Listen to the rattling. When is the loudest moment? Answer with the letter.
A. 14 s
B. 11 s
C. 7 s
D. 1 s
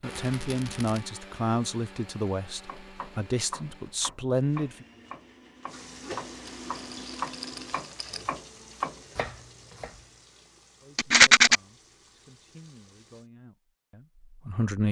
B.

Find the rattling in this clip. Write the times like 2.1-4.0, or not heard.
0.1-1.0, 6.5-8.2, 10.9-11.6.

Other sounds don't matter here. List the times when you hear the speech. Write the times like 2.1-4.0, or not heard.
0.0-4.8, 10.8-14.8.